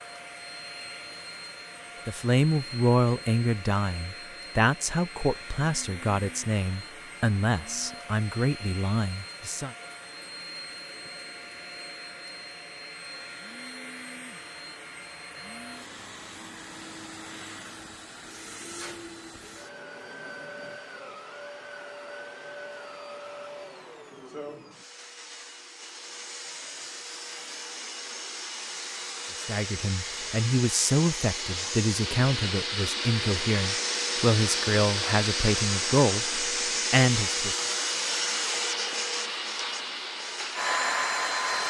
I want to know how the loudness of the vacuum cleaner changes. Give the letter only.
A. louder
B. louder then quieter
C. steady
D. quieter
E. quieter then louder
A.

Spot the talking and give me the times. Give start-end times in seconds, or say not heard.
2.0-9.7, 29.4-37.5.